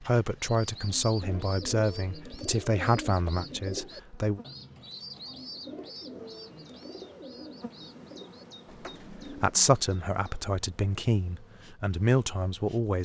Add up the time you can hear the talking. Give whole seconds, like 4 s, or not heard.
8 s.